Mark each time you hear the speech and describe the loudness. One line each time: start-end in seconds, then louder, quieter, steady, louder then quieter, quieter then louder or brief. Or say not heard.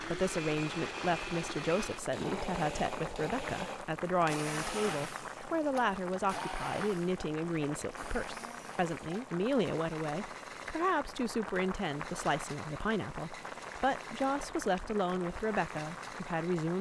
0.0-16.7 steady.